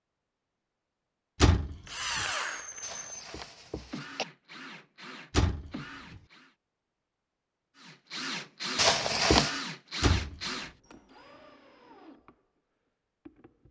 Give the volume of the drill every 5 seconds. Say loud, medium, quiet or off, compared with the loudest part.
loud, loud, medium.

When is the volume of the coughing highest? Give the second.
9 s.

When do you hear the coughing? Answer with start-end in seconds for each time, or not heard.
2.8-4.2, 8.8-9.6.